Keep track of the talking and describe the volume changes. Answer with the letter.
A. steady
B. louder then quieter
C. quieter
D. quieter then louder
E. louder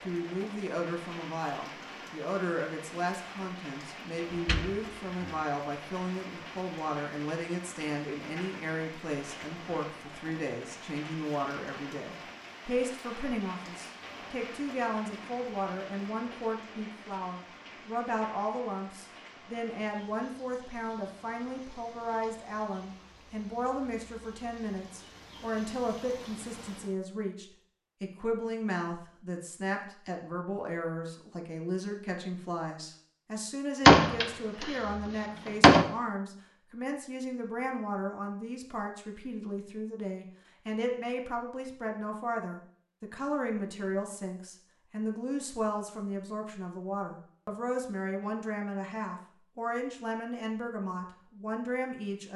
A.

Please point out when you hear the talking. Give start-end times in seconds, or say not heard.
0.0-52.3.